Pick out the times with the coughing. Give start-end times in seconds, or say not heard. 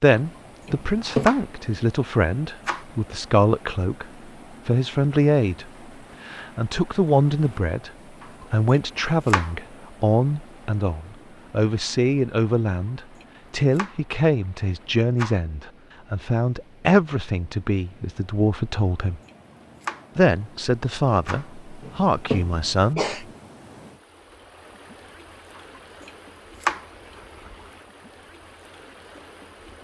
0.7-1.3, 21.8-23.2.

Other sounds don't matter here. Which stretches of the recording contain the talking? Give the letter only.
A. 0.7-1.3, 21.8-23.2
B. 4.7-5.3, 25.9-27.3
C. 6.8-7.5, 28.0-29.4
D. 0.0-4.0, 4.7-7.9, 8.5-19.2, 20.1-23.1
D.